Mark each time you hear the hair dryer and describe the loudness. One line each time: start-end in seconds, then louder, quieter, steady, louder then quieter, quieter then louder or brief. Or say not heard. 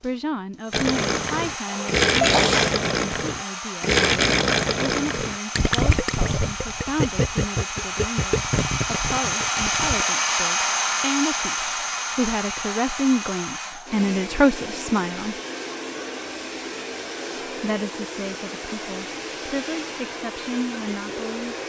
0.0-21.6 louder then quieter.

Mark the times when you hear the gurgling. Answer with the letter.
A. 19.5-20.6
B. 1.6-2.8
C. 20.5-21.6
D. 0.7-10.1
D.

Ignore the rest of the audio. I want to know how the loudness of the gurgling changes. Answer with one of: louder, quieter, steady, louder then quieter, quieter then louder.
quieter.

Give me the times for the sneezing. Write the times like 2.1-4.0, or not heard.
1.6-2.8.